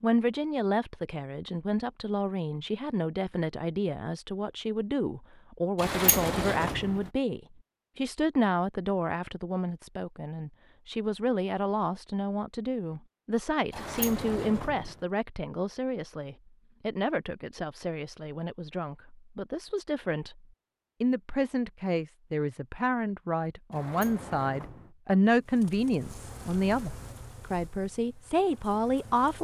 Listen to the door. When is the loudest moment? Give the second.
6 s.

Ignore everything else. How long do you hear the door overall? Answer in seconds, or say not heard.
4 s.